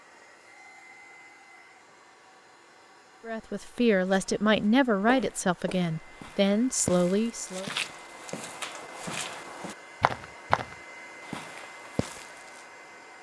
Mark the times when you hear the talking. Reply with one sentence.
You can hear the talking from 3.2 to 7.7 s.